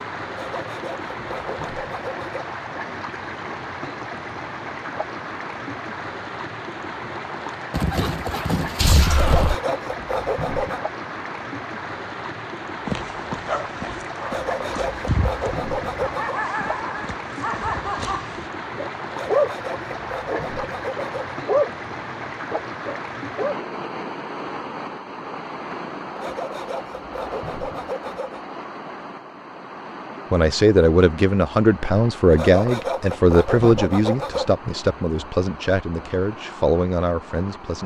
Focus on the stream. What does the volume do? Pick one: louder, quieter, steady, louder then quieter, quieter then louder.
quieter.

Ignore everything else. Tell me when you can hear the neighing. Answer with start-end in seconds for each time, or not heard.
7.7-9.6.